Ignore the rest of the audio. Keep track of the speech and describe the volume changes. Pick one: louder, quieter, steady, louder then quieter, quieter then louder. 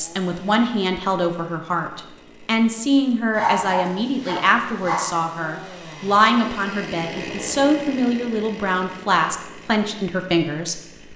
steady.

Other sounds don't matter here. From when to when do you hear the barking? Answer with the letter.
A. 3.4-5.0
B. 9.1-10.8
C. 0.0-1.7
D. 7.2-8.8
A.